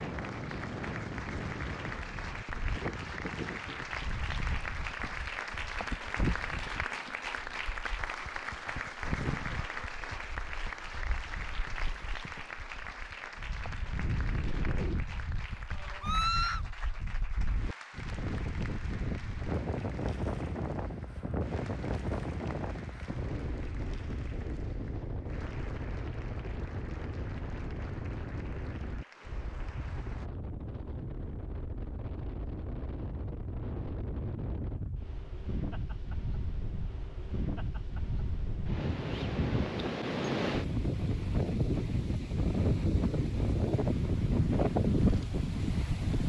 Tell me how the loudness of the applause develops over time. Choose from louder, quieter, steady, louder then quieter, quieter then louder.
quieter.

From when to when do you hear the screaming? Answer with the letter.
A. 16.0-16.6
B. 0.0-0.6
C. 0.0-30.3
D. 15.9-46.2
A.